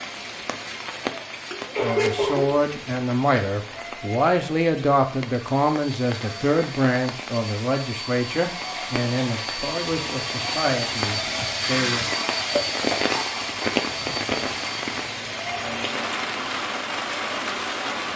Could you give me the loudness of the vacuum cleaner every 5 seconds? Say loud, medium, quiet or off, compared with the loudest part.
off, medium, loud, medium.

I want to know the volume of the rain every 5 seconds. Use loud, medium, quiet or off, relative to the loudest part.
medium, medium, loud, loud.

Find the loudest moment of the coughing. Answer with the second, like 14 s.
2 s.